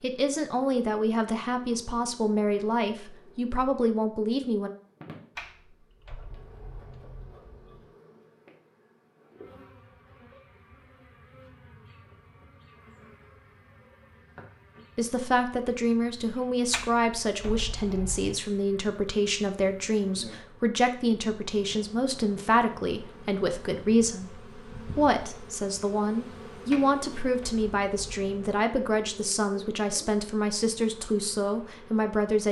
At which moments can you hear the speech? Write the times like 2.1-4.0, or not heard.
0.0-4.7, 14.9-32.4.